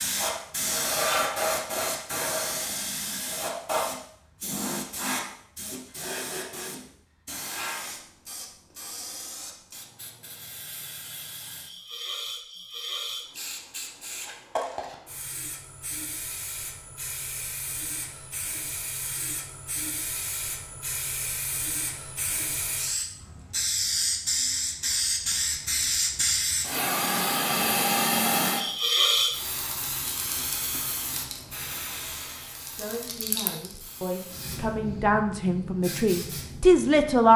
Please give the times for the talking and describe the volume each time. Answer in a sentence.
You can hear the talking from 32.8 to 37.3 s, getting louder.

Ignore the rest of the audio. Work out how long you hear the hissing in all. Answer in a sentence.
You can hear the hissing for 37 seconds altogether.